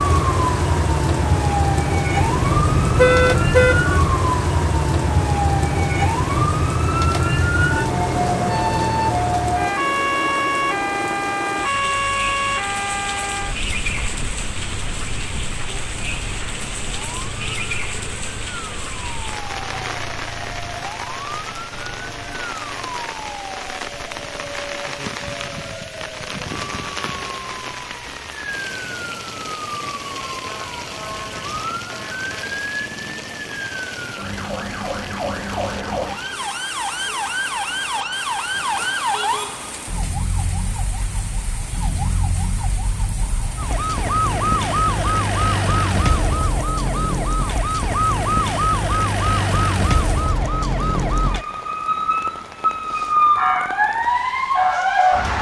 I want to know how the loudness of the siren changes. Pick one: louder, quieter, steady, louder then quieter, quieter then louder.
quieter then louder.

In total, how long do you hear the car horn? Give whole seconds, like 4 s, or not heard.
2 s.